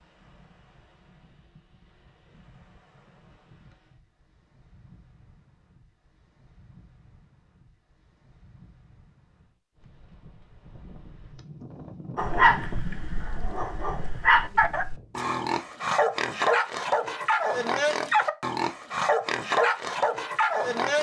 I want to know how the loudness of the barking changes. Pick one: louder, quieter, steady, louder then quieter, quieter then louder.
louder.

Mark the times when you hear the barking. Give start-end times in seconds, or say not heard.
12.2-20.9.